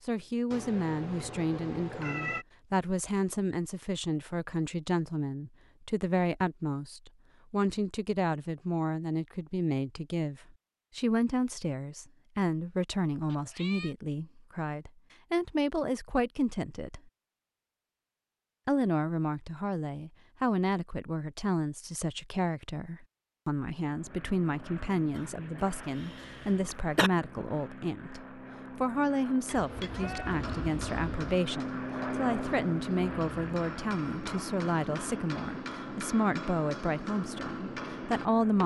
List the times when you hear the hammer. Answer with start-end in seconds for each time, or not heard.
29.4-38.6.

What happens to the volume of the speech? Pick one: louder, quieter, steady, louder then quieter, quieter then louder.
steady.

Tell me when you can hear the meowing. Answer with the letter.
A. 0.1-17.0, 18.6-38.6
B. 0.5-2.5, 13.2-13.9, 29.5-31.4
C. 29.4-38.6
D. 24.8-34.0
B.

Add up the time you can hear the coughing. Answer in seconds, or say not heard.
2 s.